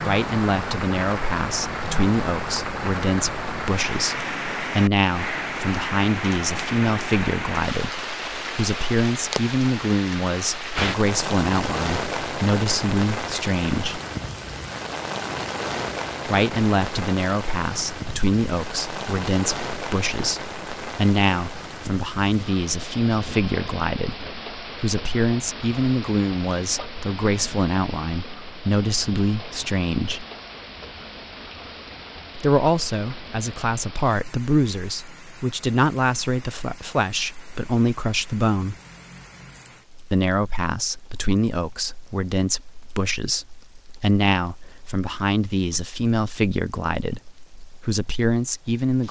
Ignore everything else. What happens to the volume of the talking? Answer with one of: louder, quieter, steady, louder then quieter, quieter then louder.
steady.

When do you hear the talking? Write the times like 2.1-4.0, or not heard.
0.0-14.0, 16.2-30.2, 32.4-38.8, 40.1-49.0.